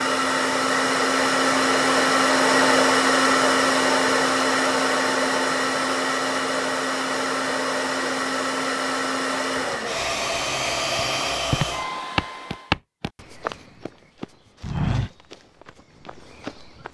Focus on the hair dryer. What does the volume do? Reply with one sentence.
The volume of the hair dryer goes down.